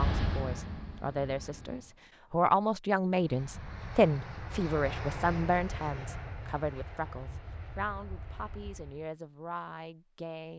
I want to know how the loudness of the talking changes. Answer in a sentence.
The loudness of the talking goes up, then down.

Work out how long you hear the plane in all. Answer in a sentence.
The plane can be heard for 8 seconds in total.